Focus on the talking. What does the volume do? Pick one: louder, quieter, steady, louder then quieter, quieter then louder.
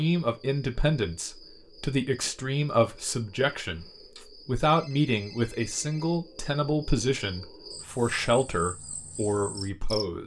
steady.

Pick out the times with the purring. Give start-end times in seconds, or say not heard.
not heard.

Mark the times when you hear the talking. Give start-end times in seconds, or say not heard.
0.0-10.2.